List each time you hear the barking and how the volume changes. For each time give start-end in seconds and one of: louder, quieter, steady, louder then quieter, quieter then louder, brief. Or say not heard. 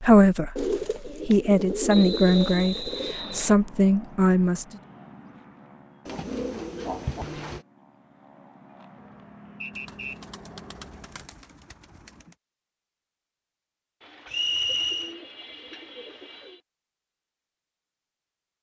not heard.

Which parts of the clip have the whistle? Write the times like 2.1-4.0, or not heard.
1.9-3.5, 9.6-10.2, 14.3-15.2.